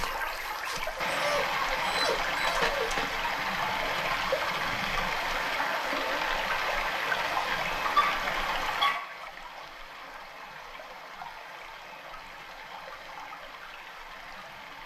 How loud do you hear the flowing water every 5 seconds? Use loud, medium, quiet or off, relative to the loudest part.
loud, loud, quiet.